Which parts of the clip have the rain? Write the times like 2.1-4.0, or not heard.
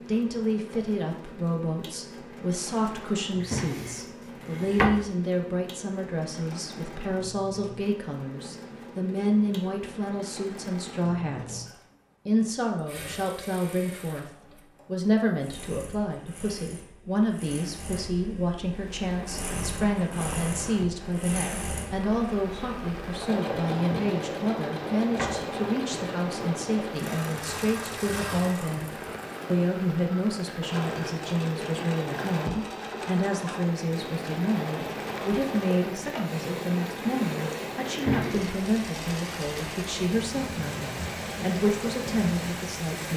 18.7-43.1.